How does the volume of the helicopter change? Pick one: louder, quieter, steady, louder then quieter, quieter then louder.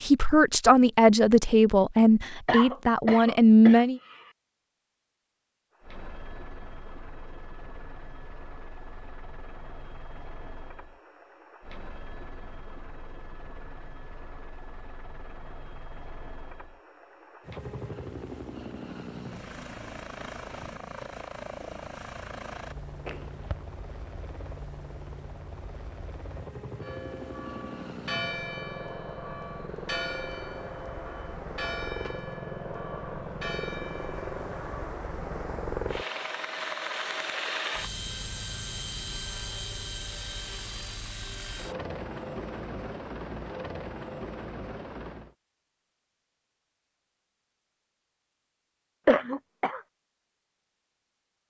louder.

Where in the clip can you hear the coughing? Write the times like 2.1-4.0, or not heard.
2.5-4.3, 23.1-23.6, 49.0-49.8.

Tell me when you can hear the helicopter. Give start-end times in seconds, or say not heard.
5.8-45.4.